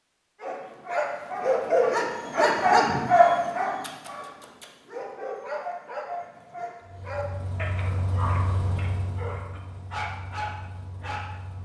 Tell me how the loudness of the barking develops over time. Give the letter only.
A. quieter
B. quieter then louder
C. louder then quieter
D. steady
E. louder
A.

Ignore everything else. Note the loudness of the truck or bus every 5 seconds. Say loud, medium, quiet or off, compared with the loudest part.
off, loud, medium.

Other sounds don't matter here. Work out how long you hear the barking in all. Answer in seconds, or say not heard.
11 s.